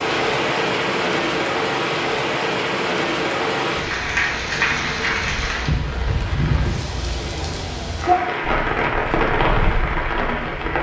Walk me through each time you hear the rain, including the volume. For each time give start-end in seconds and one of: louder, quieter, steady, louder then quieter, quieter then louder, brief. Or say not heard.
0.0-10.7 steady.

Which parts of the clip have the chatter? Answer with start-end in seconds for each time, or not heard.
not heard.